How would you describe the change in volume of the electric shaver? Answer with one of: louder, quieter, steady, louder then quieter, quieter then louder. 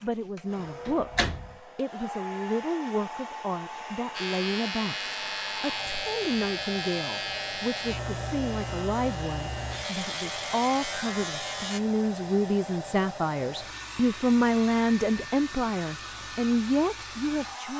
steady.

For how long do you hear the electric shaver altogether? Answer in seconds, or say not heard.
8 s.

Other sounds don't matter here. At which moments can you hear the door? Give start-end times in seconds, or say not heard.
0.6-1.6.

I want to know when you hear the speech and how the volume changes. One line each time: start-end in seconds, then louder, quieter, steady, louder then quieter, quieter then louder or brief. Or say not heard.
0.0-17.7 louder.